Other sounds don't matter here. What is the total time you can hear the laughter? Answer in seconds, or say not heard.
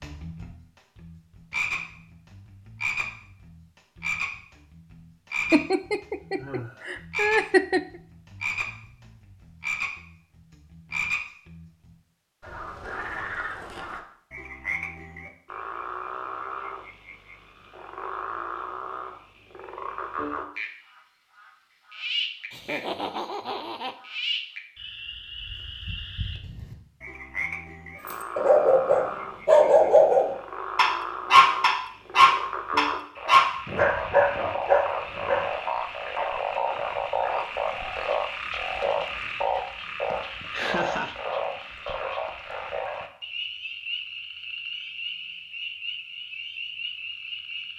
5 s.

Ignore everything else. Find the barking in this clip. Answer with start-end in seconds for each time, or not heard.
28.1-35.5.